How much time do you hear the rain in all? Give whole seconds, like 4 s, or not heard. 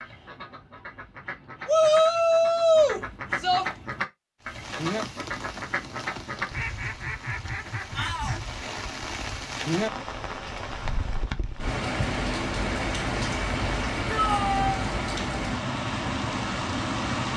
13 s.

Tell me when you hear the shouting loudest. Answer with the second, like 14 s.
2 s.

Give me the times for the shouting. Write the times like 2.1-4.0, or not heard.
1.6-3.6, 7.9-8.6, 14.1-14.8.